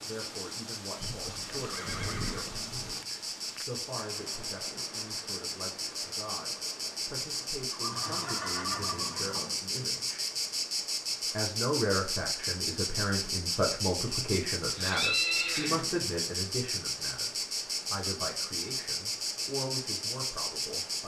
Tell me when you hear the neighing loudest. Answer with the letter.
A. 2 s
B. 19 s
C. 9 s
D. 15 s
D.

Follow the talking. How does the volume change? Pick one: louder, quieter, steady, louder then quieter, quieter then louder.
louder then quieter.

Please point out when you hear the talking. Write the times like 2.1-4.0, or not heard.
0.0-10.2, 11.3-17.3, 17.9-21.0.